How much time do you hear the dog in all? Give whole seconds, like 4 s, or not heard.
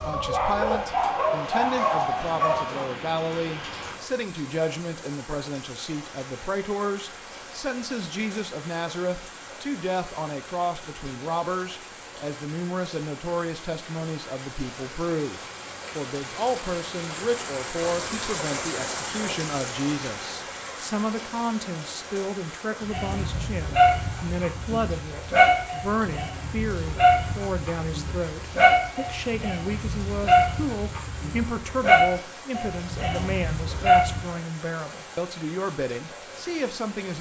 14 s.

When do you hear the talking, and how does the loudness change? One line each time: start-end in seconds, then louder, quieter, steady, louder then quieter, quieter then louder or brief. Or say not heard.
0.0-37.1 steady.